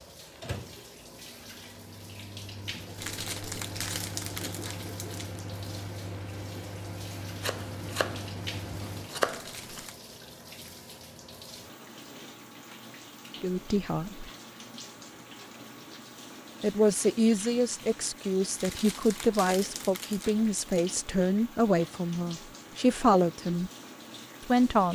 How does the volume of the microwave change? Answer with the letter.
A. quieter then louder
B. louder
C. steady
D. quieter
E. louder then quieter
B.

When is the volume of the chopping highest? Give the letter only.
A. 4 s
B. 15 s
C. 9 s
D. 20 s
C.